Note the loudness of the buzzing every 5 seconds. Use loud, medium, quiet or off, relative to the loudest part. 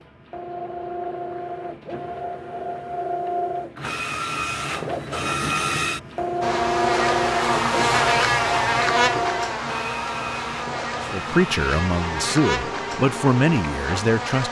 off, loud, medium.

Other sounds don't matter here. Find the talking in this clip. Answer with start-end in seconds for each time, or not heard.
10.9-14.4.